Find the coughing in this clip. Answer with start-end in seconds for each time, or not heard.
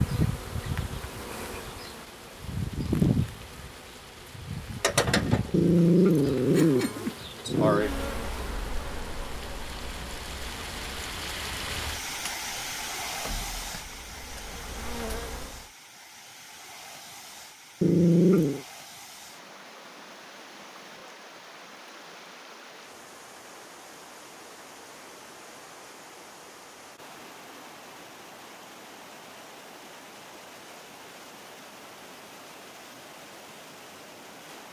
not heard.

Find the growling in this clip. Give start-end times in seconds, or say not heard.
5.5-7.8, 17.8-18.6.